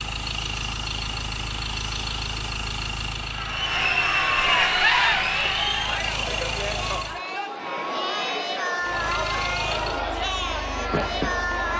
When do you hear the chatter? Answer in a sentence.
You can hear the chatter from 3.2 to 11.7 s.